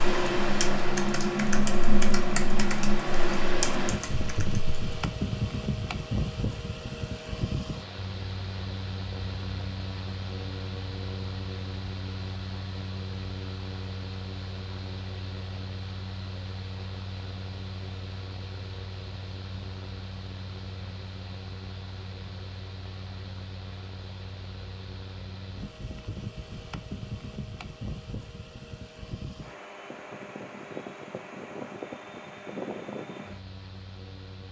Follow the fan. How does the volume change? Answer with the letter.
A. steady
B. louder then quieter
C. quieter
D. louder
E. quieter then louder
C.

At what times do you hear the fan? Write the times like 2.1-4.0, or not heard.
0.0-34.4.